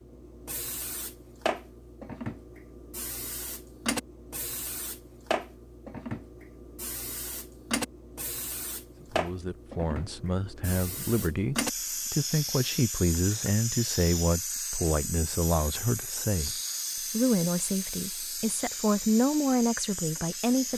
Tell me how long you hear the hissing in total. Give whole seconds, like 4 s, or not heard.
21 s.